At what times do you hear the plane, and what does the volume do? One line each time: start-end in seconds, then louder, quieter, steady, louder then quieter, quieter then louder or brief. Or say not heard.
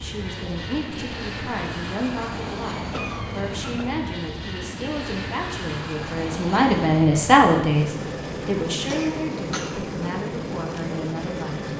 0.0-11.7 steady.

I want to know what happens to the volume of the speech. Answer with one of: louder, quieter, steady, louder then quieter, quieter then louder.
louder then quieter.